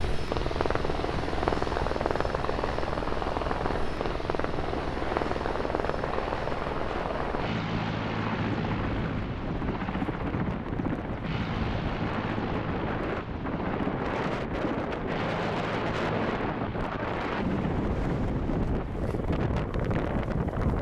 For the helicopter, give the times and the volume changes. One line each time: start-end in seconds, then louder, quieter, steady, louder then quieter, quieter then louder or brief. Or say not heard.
0.0-20.7 quieter.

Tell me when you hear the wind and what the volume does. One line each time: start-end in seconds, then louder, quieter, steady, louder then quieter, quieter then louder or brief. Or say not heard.
0.0-20.7 louder.